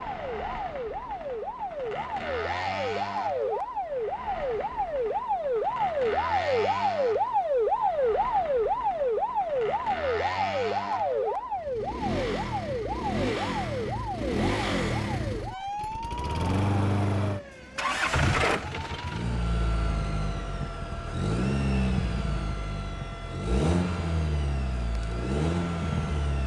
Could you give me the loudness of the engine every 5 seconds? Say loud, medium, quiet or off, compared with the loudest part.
medium, medium, loud, loud, loud, loud.